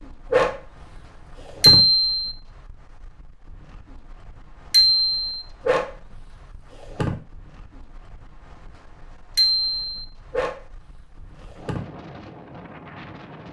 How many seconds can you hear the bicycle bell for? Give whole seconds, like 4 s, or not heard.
2 s.